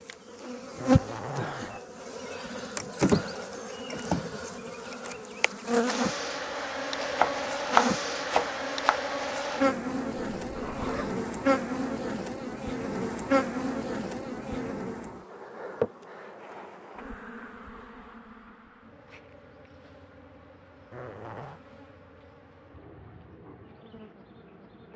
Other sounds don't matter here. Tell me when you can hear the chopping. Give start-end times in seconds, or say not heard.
7.2-9.0.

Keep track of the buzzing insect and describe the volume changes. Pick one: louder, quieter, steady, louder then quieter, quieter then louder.
quieter.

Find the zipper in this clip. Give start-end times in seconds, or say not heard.
0.8-1.8, 10.4-11.2, 20.9-21.6.